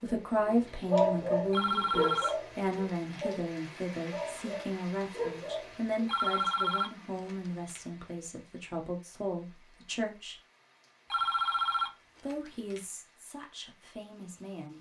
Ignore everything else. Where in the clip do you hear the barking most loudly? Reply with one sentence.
The loudest moment of the barking is at 1 second.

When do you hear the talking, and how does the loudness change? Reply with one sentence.
You can hear the talking from 0.0 to 10.4 s, getting quieter; and briefly from 12.2 to 14.7 s.